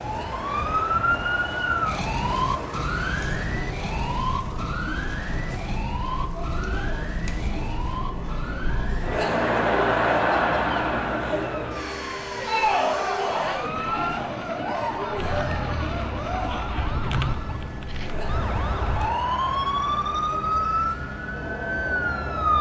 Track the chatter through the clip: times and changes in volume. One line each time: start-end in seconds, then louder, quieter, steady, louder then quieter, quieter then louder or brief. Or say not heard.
0.0-22.5 louder then quieter.